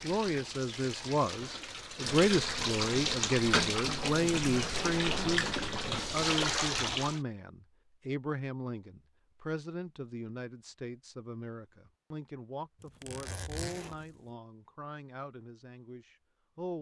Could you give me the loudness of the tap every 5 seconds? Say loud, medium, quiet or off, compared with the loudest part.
loud, loud, off, off.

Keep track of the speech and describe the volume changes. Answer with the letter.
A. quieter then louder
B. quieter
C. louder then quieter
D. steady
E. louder
B.